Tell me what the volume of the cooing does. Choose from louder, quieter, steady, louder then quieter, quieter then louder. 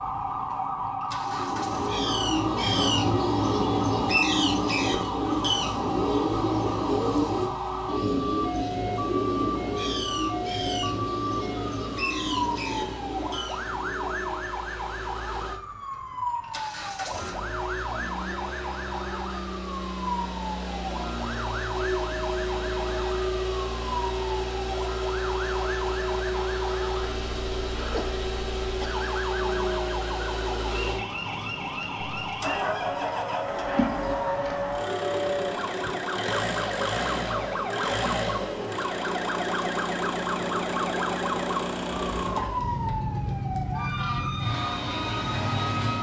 quieter.